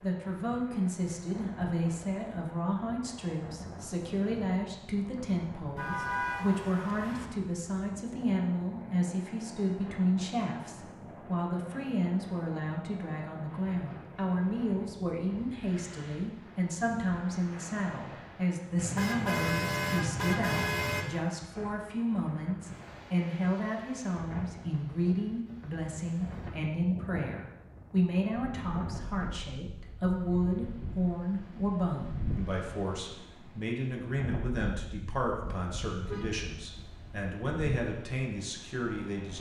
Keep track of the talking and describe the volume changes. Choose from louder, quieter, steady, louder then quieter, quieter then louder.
steady.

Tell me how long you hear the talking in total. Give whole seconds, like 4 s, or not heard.
39 s.